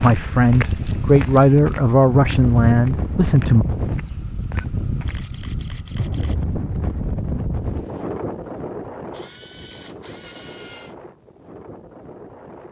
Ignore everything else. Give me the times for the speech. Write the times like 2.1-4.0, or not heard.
0.0-3.6.